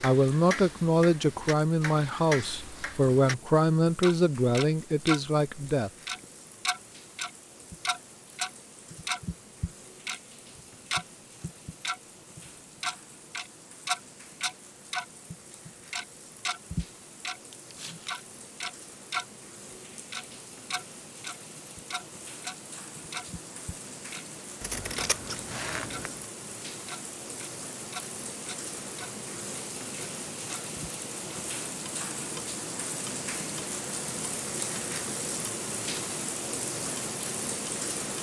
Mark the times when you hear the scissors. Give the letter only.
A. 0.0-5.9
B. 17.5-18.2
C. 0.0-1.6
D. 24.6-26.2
D.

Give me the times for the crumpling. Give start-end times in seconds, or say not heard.
17.5-18.2.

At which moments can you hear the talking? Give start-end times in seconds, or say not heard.
0.0-5.9.